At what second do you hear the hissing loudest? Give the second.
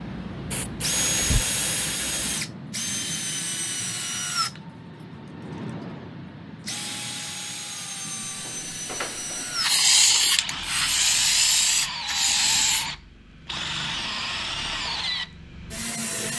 10 s.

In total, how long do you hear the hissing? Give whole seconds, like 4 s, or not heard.
6 s.